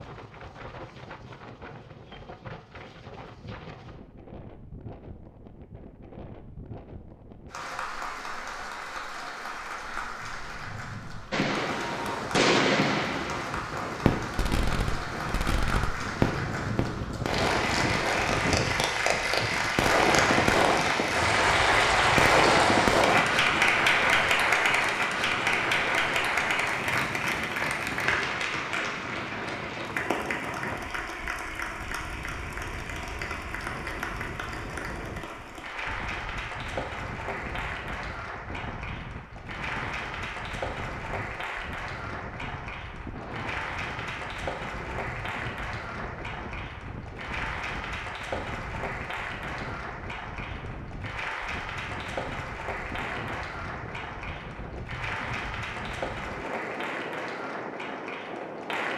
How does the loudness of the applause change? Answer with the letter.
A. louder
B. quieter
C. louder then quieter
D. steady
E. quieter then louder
C.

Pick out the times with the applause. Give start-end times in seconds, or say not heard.
7.5-58.9.